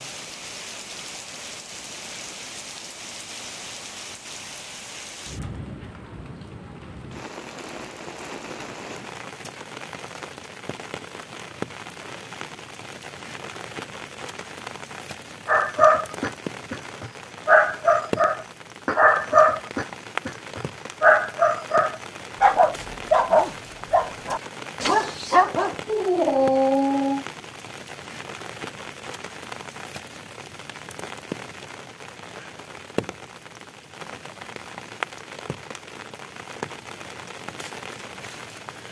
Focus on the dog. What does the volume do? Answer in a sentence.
The volume of the dog stays about the same.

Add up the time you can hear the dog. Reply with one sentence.
You can hear the dog for 12 seconds altogether.